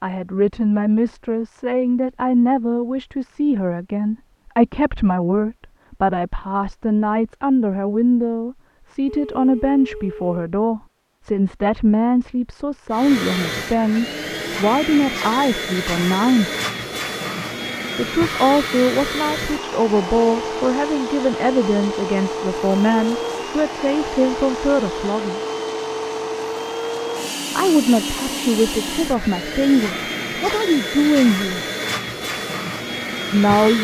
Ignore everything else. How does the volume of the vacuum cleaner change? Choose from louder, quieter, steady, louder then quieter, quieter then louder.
steady.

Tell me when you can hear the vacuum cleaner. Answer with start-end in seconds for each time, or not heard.
12.9-33.7.